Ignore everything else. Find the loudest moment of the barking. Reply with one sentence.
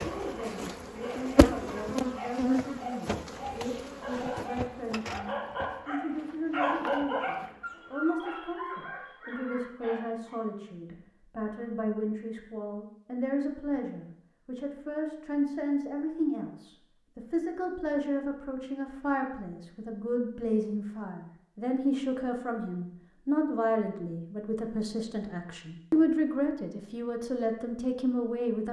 The loudest moment of the barking is at 7 seconds.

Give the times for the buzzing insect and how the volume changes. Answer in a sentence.
The buzzing insect can be heard from 0.0 to 7.8 s, getting quieter.